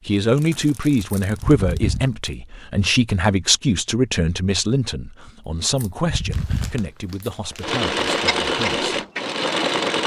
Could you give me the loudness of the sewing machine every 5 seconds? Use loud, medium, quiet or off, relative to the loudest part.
off, loud.